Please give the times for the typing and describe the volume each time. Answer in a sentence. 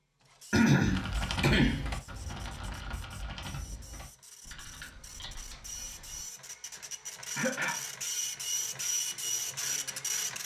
The typing can be heard from 0.8 to 6.2 s, getting quieter.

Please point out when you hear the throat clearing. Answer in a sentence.
You can hear the throat clearing from 0.5 to 1.9 s and from 7.3 to 7.8 s.